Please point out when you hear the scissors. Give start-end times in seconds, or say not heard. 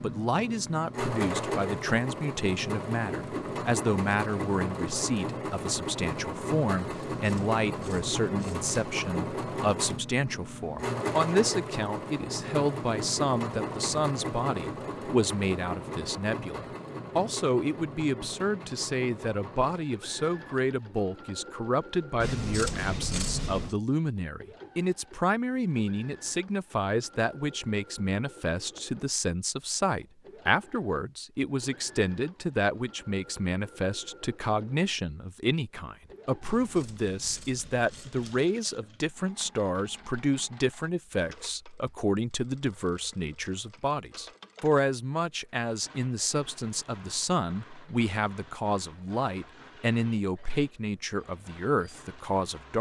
7.2-8.7, 22.2-23.8, 36.4-38.4.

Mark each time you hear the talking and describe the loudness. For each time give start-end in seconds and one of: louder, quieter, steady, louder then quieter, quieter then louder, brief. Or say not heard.
0.0-52.7 steady.